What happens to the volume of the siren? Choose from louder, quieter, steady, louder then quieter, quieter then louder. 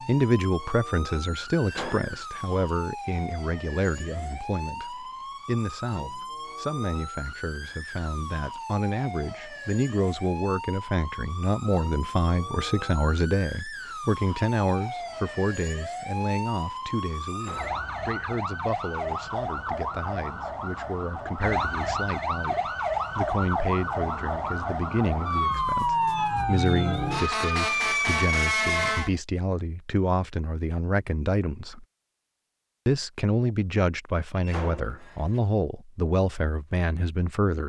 louder.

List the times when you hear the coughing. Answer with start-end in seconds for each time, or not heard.
not heard.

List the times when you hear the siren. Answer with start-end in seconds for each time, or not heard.
0.0-29.1.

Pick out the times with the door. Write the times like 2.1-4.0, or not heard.
1.6-2.1, 17.2-17.9, 34.4-35.4.